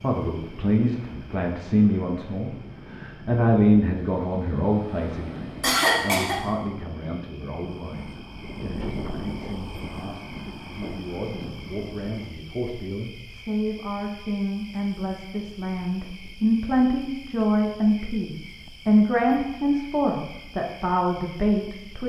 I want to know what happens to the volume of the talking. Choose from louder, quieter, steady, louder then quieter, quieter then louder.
quieter then louder.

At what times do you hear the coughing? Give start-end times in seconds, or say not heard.
5.6-6.4.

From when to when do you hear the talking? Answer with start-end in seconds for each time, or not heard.
0.0-22.0.